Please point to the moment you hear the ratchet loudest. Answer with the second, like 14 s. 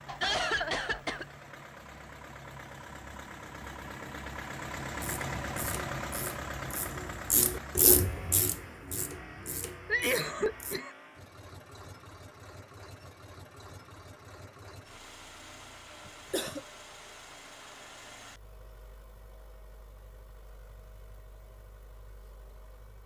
8 s.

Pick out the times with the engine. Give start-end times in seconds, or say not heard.
0.0-23.0.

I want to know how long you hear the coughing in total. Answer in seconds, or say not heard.
3 s.